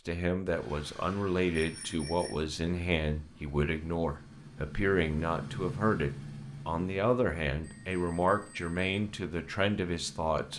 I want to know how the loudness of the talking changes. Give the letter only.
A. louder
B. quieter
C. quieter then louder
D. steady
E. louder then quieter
D.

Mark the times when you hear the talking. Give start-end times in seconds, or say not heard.
0.1-10.5.